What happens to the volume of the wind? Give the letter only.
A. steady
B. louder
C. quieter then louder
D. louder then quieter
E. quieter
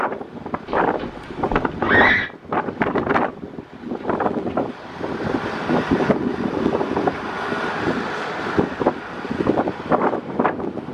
A.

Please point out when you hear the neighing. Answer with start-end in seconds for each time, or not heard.
0.7-2.3.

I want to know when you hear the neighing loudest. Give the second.
2 s.